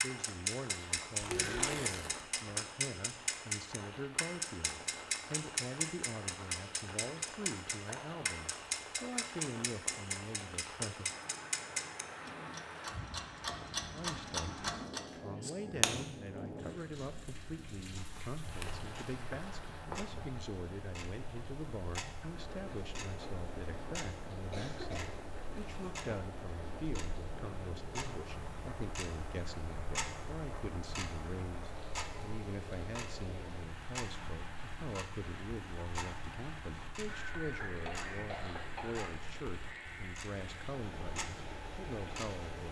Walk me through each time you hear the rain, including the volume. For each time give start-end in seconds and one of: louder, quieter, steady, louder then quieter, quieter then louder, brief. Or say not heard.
0.0-42.6 steady.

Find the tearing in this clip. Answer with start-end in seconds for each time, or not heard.
1.1-2.3.